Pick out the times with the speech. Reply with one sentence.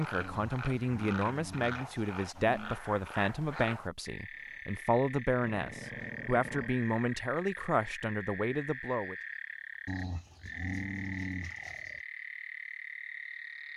You can hear the speech from 0.0 to 9.2 s.